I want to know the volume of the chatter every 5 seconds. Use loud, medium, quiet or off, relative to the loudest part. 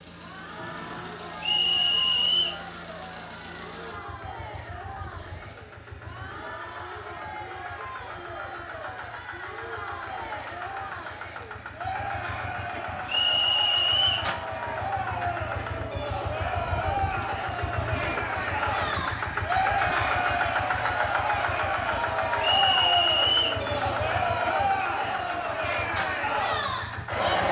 quiet, quiet, medium, loud, loud, loud.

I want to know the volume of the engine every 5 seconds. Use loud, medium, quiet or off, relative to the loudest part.
medium, medium, medium, loud, loud, medium.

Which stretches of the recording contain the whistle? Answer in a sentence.
The whistle can be heard from 1.4 to 2.5 s, from 13.1 to 14.3 s and from 22.4 to 23.6 s.